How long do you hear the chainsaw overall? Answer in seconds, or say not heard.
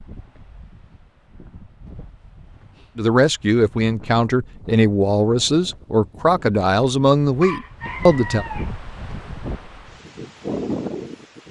not heard.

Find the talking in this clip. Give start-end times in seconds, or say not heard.
3.0-8.4.